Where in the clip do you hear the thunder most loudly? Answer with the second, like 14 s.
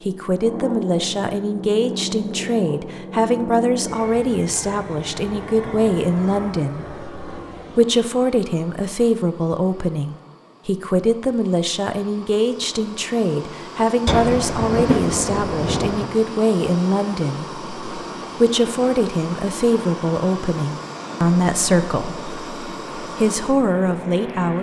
15 s.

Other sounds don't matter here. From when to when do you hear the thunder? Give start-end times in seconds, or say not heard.
14.1-16.1.